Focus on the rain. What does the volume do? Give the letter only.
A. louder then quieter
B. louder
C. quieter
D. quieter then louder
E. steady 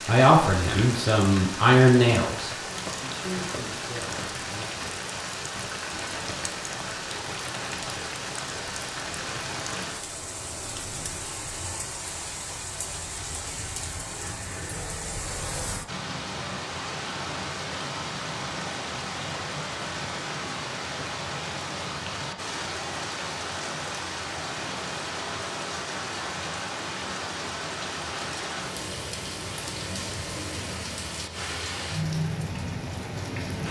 E.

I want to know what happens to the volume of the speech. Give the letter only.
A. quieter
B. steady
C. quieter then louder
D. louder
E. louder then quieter
E.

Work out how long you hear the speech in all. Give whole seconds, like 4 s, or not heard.
5 s.